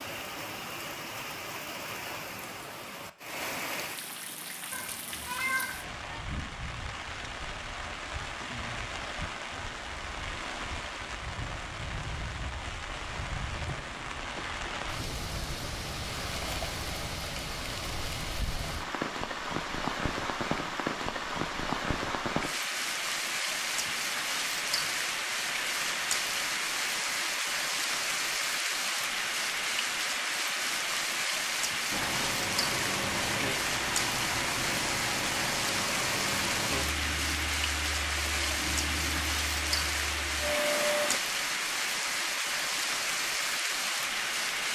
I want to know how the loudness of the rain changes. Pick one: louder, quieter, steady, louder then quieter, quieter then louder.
louder.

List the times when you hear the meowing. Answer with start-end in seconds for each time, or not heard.
4.7-6.2.